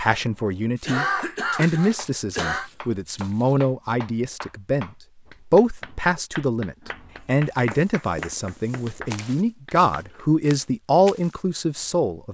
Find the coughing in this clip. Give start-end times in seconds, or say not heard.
0.8-2.7.